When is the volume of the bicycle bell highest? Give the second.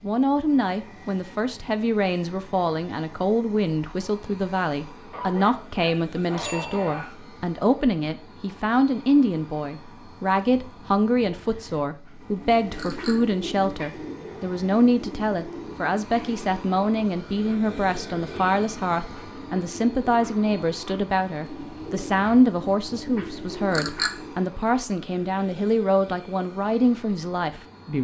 24 s.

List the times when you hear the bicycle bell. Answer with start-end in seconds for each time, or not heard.
6.3-7.0, 12.8-13.2, 23.7-24.1.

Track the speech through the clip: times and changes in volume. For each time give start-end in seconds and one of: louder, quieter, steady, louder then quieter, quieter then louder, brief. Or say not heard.
0.0-27.9 steady.